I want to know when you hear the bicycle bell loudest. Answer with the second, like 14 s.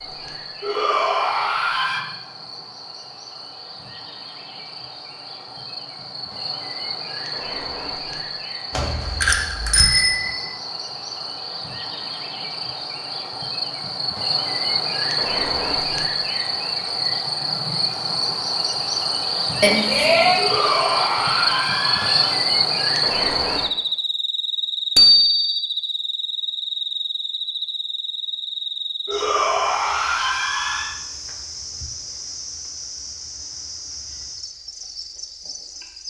25 s.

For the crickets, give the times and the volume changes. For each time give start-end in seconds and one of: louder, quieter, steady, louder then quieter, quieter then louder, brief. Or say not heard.
0.0-36.0 louder then quieter.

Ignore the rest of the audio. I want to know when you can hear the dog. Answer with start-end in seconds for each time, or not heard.
not heard.